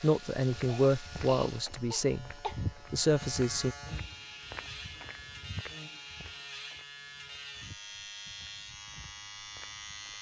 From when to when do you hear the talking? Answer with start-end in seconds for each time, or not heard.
0.0-3.8.